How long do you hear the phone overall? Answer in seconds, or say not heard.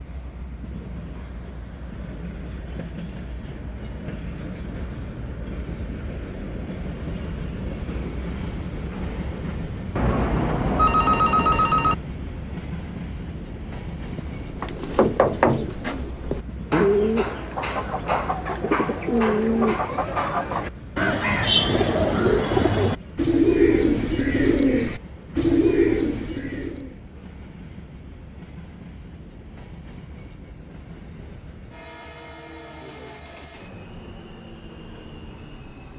2 s.